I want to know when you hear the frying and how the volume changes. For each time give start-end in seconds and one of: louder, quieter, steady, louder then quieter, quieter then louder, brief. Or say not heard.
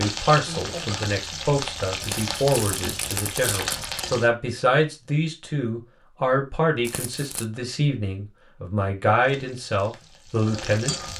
0.0-4.3 steady
9.2-11.1 brief.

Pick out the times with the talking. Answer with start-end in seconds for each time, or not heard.
0.0-11.1.